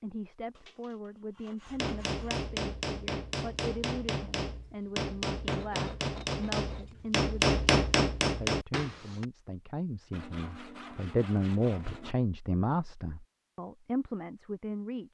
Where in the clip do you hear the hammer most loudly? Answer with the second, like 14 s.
8 s.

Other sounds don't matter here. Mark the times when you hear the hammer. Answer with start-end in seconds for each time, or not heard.
1.7-9.2.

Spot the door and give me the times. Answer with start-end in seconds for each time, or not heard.
not heard.